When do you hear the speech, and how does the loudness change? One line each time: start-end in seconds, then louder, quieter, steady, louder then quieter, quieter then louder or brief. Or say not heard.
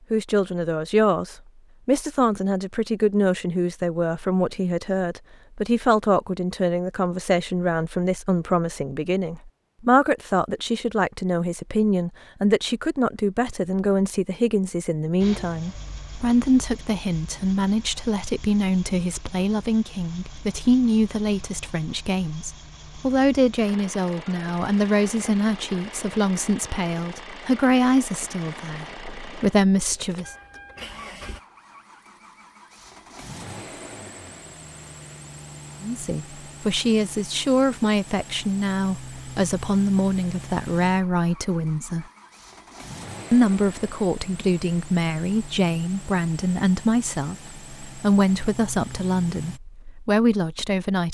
0.1-30.3 steady
35.8-42.0 steady
43.3-51.0 steady.